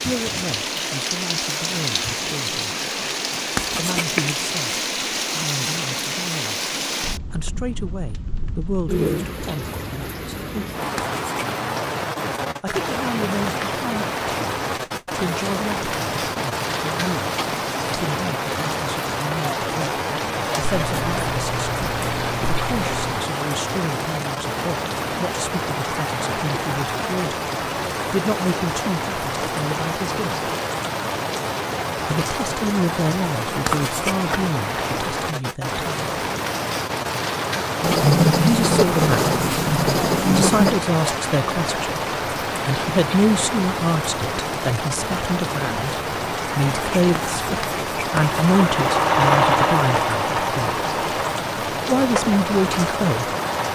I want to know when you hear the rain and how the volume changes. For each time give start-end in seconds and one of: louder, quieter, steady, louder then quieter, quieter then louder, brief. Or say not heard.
0.0-53.6 steady.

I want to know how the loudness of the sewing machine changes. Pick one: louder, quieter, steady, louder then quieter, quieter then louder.
quieter.